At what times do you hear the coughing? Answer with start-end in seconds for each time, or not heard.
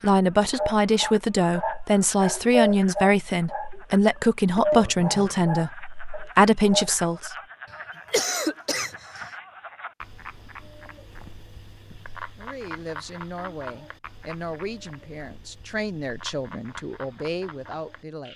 8.1-9.3.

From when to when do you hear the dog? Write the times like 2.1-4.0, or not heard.
0.5-6.9.